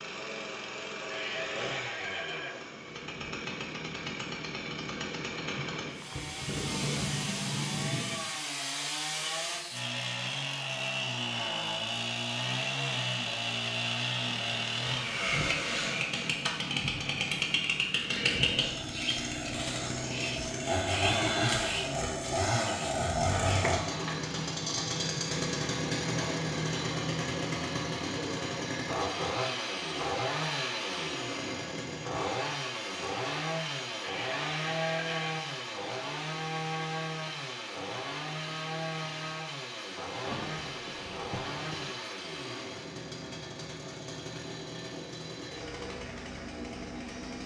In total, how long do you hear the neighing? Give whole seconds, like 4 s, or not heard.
3 s.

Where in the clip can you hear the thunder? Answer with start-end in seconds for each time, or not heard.
5.4-8.2, 40.2-42.0.